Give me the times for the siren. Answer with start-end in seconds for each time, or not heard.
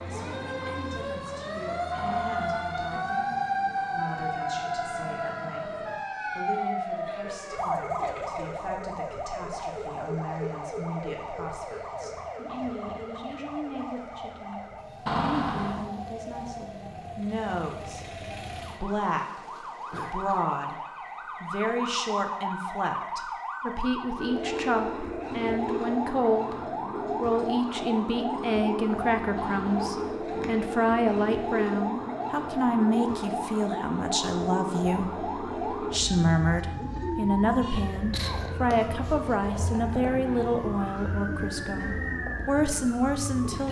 0.0-43.6.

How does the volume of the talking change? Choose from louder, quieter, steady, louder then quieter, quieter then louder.
louder.